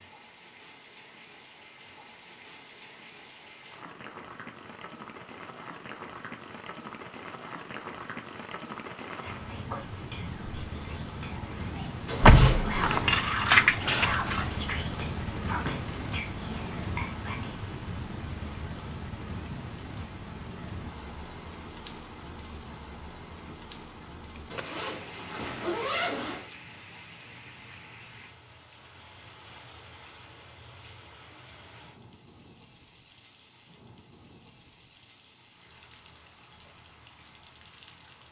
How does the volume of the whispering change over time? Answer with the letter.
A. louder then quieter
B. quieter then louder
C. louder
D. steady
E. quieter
A.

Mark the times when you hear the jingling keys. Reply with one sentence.
The jingling keys can be heard from 12.2 to 14.5 s and from 23.4 to 24.6 s.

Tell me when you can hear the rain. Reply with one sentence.
The rain can be heard from 0.0 to 38.2 s.